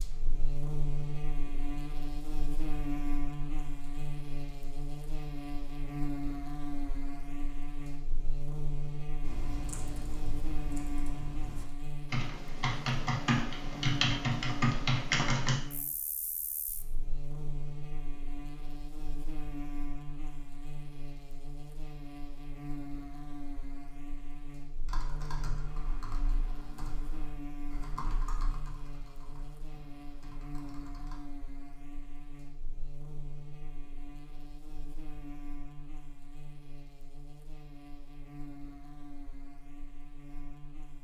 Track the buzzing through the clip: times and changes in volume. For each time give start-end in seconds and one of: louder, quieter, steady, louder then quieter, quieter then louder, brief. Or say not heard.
0.0-40.9 quieter.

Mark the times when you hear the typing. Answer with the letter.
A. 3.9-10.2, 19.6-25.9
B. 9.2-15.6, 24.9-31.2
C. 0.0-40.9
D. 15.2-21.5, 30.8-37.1
B.